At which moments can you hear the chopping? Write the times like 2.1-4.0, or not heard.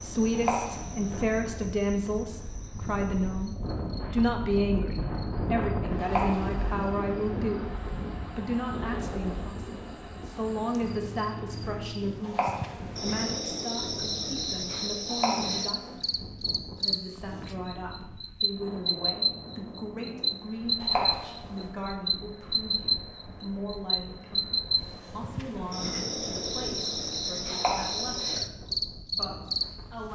0.3-1.2, 6.0-6.9, 12.2-13.0, 15.1-16.0, 20.8-21.7, 27.5-28.2.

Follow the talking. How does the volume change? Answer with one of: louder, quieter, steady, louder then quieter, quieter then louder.
quieter.